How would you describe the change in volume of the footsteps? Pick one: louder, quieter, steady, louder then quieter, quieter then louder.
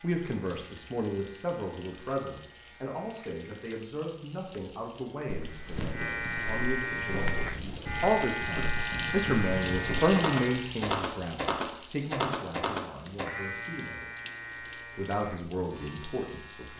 louder.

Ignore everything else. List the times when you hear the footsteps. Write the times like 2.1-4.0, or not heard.
5.2-13.2.